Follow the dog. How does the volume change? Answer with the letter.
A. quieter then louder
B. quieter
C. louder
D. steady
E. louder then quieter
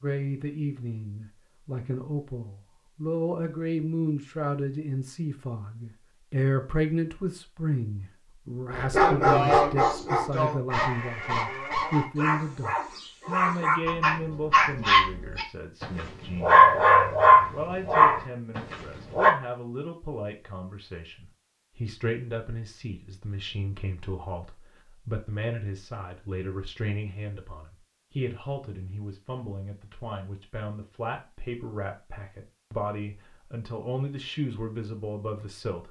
A.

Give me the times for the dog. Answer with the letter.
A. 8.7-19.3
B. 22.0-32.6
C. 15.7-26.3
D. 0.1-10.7
A.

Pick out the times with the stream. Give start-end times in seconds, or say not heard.
not heard.